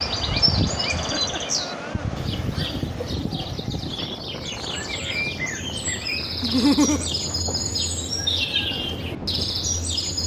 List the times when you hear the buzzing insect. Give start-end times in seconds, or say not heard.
not heard.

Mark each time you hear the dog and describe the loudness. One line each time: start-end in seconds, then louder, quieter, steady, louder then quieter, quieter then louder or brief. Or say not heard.
not heard.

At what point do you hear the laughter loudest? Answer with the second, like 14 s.
7 s.